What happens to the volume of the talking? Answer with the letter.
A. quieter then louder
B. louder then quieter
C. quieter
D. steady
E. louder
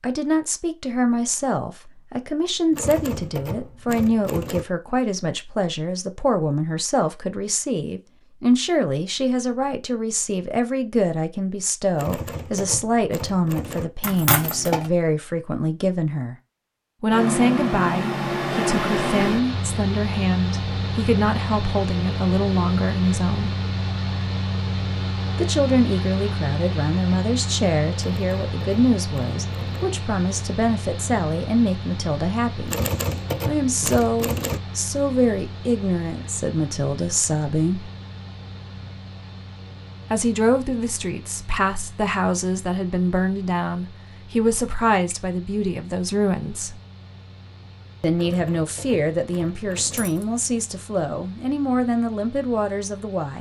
D.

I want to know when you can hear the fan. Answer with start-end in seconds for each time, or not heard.
17.1-53.3.